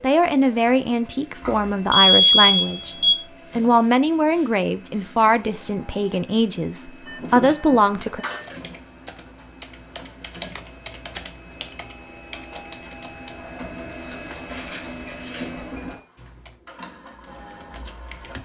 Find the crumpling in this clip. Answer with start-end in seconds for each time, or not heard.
13.9-14.8.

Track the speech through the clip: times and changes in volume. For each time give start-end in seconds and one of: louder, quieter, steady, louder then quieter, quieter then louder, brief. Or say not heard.
0.0-3.0 brief
3.5-8.2 quieter then louder.